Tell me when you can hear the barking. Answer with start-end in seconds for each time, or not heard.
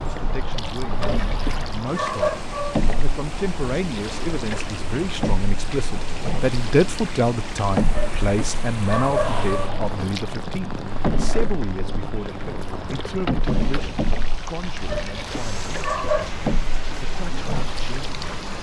1.0-2.8, 8.0-9.7, 14.8-16.3.